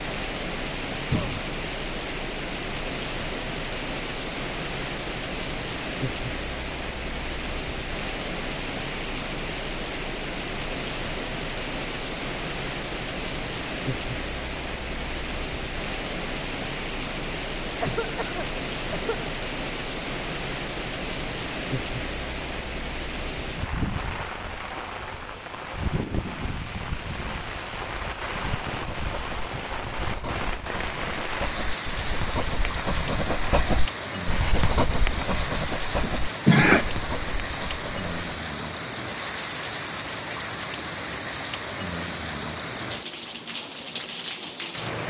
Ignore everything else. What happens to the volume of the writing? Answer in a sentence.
The loudness of the writing goes up, then down.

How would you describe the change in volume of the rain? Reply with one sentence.
The volume of the rain stays about the same.